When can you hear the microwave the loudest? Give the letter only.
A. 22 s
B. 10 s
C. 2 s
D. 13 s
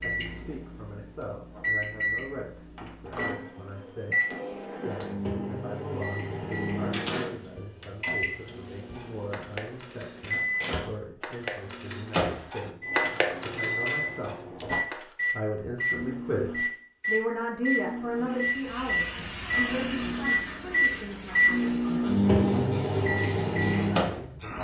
A.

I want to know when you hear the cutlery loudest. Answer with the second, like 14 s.
13 s.